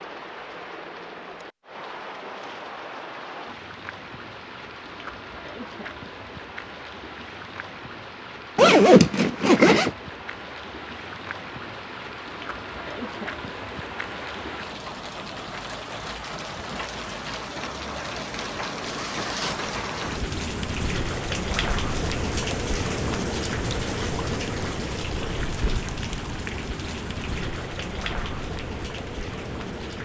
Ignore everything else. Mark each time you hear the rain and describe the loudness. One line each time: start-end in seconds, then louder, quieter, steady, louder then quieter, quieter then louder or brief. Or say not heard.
0.0-30.0 louder.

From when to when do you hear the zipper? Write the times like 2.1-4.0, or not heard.
8.6-9.9, 18.8-19.7.